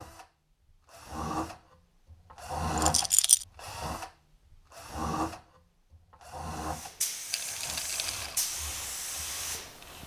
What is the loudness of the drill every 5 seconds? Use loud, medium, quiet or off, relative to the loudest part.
loud, medium.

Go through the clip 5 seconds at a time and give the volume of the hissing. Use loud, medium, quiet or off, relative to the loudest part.
off, loud.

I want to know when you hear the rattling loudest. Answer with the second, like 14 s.
3 s.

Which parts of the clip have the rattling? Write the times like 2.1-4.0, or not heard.
2.8-3.5, 7.3-8.4.